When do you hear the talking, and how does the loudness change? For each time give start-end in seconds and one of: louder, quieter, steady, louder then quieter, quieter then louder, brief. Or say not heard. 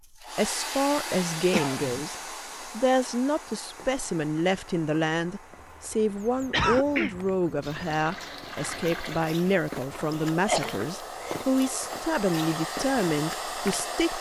0.3-14.1 steady.